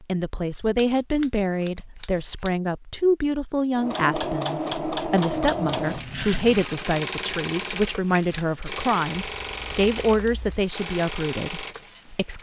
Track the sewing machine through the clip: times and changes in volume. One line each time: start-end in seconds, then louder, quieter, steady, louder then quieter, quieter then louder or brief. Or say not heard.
3.8-12.3 quieter.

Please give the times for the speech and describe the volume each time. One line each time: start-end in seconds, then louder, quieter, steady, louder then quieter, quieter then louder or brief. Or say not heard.
0.0-12.3 steady.